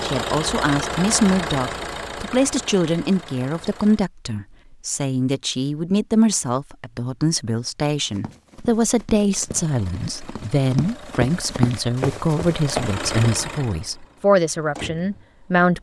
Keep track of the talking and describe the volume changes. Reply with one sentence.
The volume of the talking stays about the same.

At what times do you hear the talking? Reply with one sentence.
The talking can be heard from 0.0 to 15.7 s.